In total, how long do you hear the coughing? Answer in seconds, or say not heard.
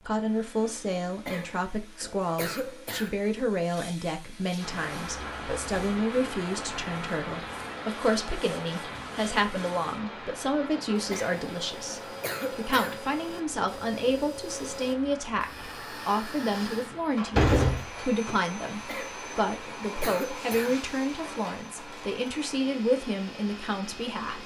6 s.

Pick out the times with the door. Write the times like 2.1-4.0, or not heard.
16.5-18.4.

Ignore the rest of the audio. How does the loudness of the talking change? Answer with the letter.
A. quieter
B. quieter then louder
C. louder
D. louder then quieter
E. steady
E.